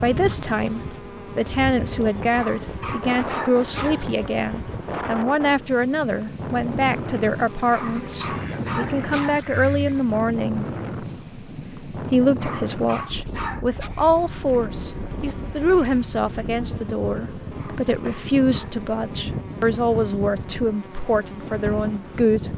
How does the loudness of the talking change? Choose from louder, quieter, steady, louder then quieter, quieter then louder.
steady.